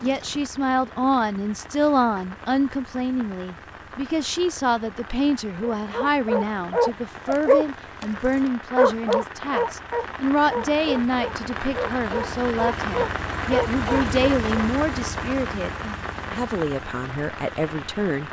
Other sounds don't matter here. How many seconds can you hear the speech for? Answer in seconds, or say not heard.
18 s.